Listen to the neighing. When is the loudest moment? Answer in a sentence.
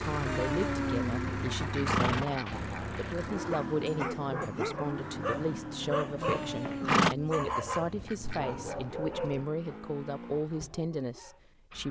The volume of the neighing peaks at 7 seconds.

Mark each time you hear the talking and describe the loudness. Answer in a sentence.
You can hear the talking from 0.0 to 11.8 s, at a steady volume.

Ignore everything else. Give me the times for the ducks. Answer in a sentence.
The ducks can be heard from 0.2 to 3.0 s and from 6.2 to 8.9 s.